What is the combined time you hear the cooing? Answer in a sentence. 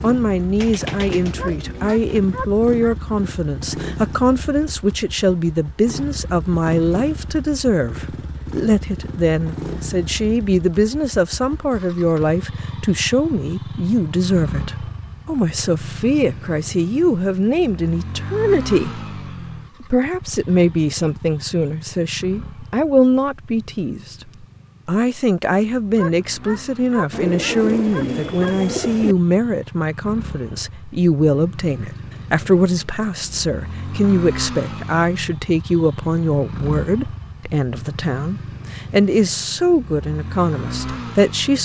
The cooing can be heard for 4 seconds in total.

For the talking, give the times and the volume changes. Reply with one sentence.
The talking can be heard from 0.0 to 19.0 s, at a steady volume; and from 19.8 to 41.6 s, at a steady volume.